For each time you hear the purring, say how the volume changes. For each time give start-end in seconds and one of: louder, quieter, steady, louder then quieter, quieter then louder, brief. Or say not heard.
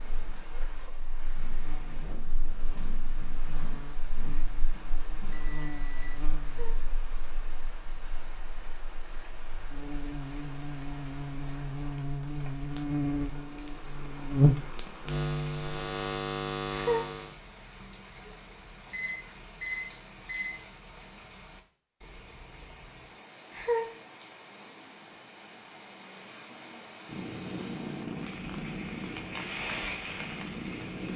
27.1-31.1 quieter then louder.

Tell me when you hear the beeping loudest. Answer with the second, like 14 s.
20 s.